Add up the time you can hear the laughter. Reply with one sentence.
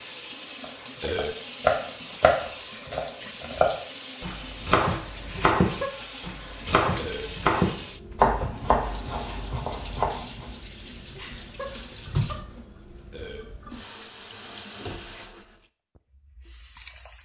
The laughter can be heard for 2 seconds in total.